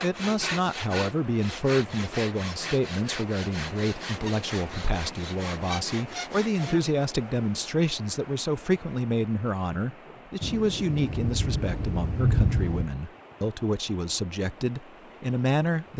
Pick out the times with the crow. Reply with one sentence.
You can't hear the crow here.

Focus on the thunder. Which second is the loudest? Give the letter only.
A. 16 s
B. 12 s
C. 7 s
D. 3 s
B.